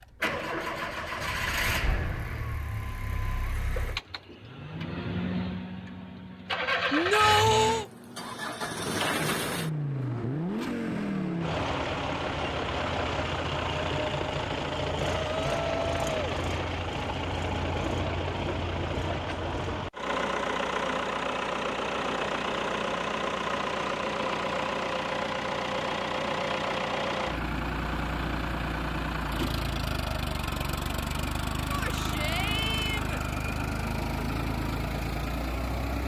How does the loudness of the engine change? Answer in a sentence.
The volume of the engine stays about the same.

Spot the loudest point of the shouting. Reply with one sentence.
The loudest moment of the shouting is at 7 seconds.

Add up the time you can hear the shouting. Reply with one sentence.
You can hear the shouting for 4 seconds altogether.